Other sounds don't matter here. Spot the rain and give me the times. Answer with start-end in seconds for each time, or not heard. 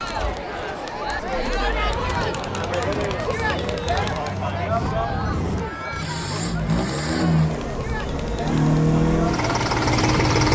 not heard.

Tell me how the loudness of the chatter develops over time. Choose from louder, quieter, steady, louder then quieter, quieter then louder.
quieter.